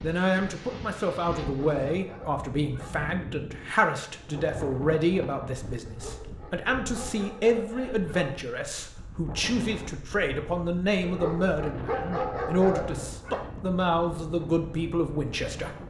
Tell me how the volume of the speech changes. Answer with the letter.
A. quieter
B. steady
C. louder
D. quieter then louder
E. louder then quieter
B.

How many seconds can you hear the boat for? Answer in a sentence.
You can't hear the boat here.